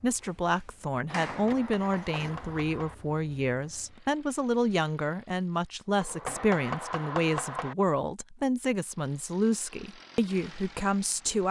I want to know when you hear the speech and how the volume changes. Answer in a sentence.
The speech can be heard from 0.0 to 11.4 s, at a steady volume.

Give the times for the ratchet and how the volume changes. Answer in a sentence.
The ratchet can't be heard in this clip.